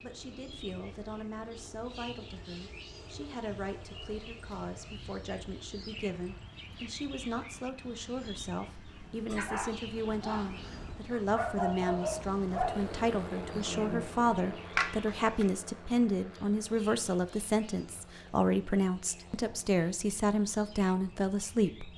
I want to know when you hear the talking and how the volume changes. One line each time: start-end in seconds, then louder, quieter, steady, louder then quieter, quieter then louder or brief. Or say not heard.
0.0-21.9 louder.